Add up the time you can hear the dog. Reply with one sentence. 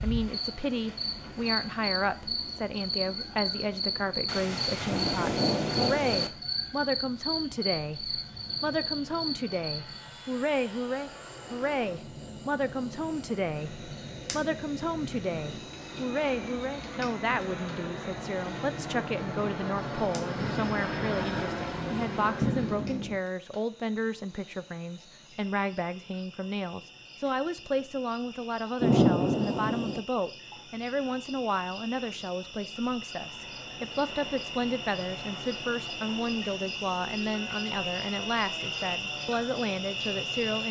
The dog can't be heard in this clip.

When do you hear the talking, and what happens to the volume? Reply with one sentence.
The talking can be heard from 0.0 to 40.6 s, at a steady volume.